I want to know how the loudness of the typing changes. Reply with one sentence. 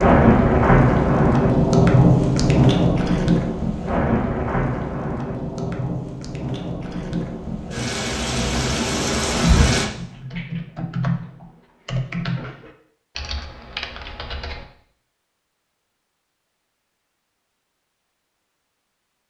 The volume of the typing goes down.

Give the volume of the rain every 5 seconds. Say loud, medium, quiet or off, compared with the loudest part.
loud, medium, off, off.